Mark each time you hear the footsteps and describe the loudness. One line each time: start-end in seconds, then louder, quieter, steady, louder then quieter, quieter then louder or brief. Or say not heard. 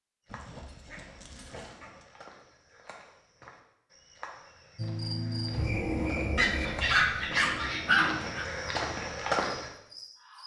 0.2-9.7 louder.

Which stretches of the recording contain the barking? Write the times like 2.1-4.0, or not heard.
0.3-2.0, 6.3-8.4.